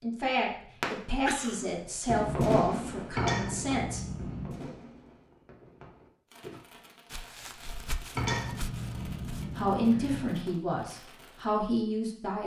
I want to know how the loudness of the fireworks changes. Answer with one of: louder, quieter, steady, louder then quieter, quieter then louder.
quieter.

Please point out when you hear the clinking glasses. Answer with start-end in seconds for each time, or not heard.
3.1-4.5, 8.2-10.4.